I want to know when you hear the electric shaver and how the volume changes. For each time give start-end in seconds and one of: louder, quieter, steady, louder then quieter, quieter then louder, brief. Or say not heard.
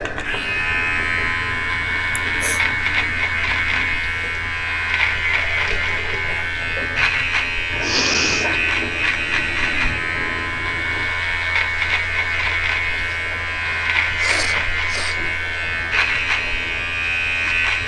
0.0-17.8 steady.